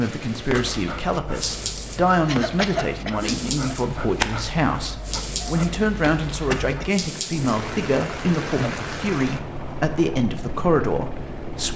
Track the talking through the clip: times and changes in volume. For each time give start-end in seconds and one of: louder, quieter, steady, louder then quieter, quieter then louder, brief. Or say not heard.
0.0-11.7 steady.